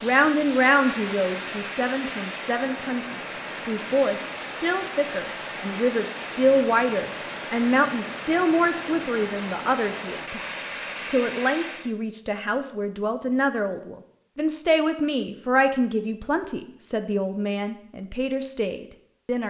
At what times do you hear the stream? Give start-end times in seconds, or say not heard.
0.0-11.9.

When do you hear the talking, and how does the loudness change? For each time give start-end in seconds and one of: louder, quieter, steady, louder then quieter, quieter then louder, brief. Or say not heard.
0.0-19.4 steady.